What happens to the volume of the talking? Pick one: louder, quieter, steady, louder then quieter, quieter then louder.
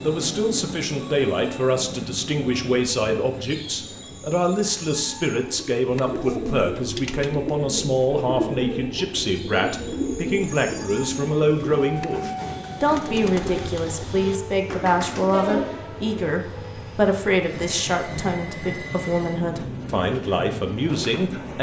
steady.